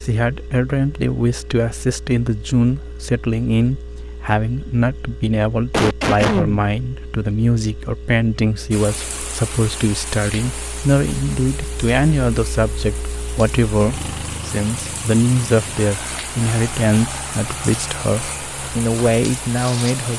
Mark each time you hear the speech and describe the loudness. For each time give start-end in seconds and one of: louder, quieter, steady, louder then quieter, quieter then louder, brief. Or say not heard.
0.0-20.1 steady.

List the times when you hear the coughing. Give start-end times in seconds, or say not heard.
5.7-6.7.